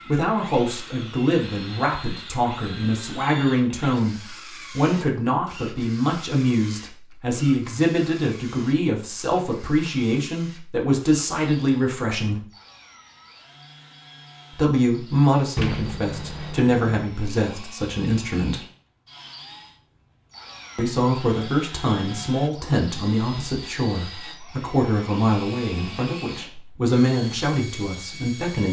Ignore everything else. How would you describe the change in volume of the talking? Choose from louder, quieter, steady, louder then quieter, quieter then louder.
steady.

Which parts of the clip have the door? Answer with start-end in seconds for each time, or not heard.
15.6-16.9.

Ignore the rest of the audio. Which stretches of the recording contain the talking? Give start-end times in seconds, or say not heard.
0.0-12.4, 14.5-18.6, 20.8-28.6.